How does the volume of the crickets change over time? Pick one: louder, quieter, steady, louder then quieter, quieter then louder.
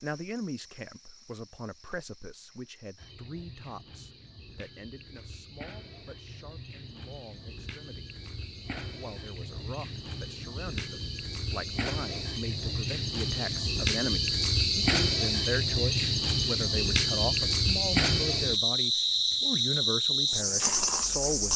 louder.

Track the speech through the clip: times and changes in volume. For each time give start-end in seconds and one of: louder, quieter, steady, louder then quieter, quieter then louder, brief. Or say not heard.
0.0-8.1 quieter
8.9-21.5 louder.